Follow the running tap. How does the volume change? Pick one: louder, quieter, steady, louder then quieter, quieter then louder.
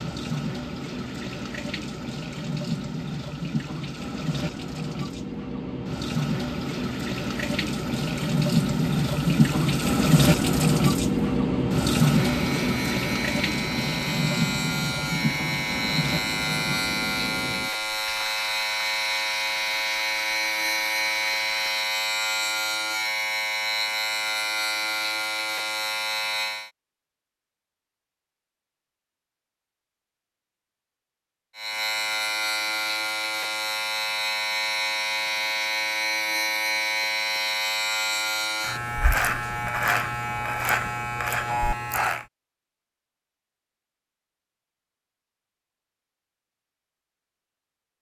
louder then quieter.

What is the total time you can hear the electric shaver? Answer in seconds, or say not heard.
25 s.